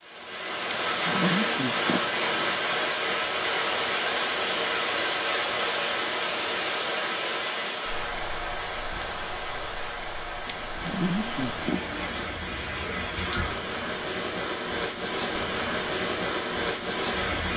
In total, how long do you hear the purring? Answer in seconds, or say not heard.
not heard.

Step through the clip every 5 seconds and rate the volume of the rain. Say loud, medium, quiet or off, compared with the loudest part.
loud, loud, medium, loud.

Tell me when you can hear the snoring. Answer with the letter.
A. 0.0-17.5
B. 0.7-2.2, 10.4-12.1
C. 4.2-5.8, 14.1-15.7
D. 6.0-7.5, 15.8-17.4
B.